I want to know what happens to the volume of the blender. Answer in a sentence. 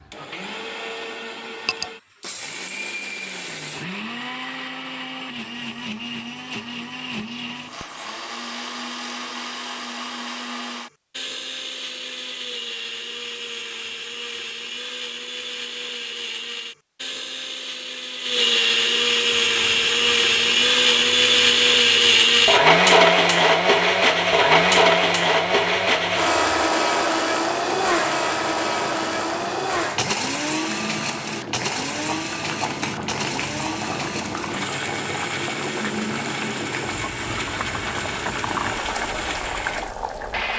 The loudness of the blender goes up, then down.